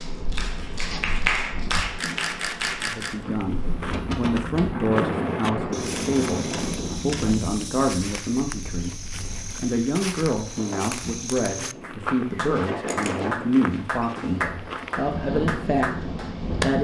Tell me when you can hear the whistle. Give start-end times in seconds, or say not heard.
not heard.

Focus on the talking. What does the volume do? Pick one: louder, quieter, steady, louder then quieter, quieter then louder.
steady.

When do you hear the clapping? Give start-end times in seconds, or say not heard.
0.0-2.9, 11.8-16.7.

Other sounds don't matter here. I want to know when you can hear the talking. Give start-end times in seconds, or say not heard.
2.8-16.7.